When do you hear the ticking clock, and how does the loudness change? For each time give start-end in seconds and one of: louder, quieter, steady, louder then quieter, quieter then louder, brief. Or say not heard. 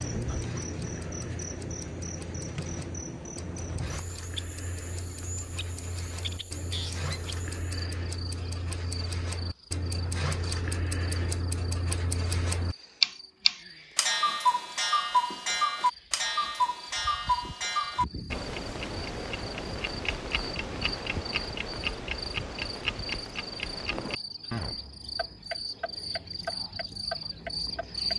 0.0-28.1 louder then quieter.